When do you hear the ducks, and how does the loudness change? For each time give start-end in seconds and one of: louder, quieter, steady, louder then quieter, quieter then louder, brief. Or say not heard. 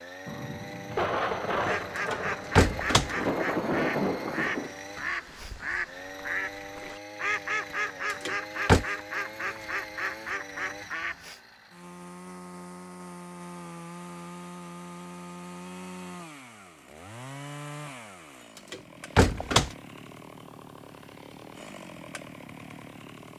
1.5-11.3 steady.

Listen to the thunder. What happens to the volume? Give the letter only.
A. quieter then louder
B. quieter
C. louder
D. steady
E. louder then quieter
A.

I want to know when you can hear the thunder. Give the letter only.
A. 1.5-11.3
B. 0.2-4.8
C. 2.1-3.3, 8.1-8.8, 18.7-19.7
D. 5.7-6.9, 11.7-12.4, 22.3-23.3
B.